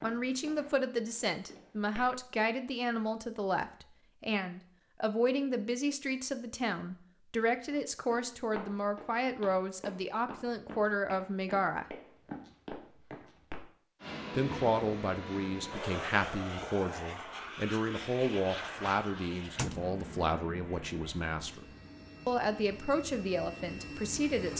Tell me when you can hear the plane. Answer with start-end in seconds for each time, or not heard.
14.0-24.5.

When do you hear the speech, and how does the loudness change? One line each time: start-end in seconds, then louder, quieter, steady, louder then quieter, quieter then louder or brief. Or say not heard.
0.0-11.8 steady
14.3-21.6 steady
22.2-24.5 brief.